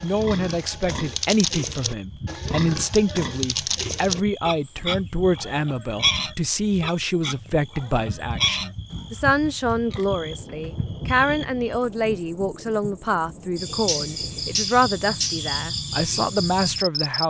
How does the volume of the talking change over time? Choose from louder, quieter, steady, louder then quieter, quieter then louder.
steady.